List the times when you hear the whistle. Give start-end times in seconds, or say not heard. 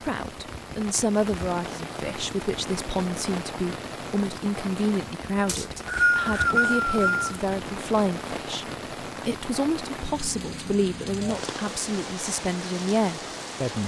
5.5-7.3.